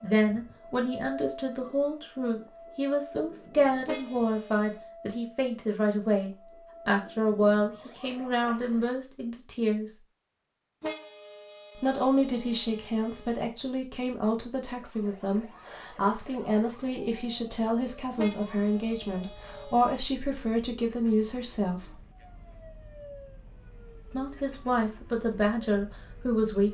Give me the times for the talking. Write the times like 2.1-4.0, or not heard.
0.0-9.9, 11.8-21.9, 24.1-26.6.